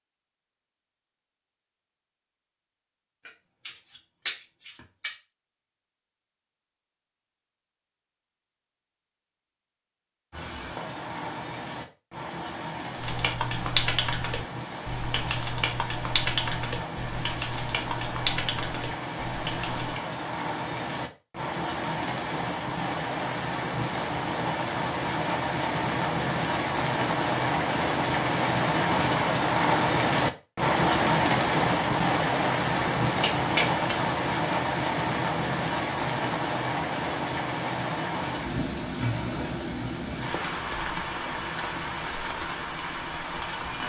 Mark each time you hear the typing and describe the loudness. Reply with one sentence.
The typing can be heard from 12.9 to 19.9 s, getting quieter.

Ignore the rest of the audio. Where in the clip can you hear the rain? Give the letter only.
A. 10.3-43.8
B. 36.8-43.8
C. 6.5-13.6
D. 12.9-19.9
A.